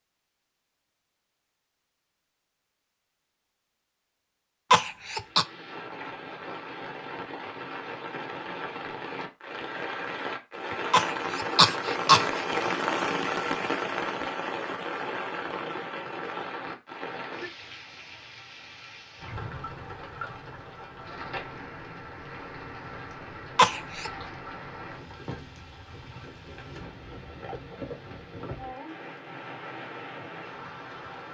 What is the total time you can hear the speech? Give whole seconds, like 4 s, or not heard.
not heard.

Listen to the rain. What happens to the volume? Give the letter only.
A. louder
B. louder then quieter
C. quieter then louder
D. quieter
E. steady
B.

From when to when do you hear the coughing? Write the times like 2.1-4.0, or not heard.
4.7-5.5, 10.9-12.4, 23.6-24.1.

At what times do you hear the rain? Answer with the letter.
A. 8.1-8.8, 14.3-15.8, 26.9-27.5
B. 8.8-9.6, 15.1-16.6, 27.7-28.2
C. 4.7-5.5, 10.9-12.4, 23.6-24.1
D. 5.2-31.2
D.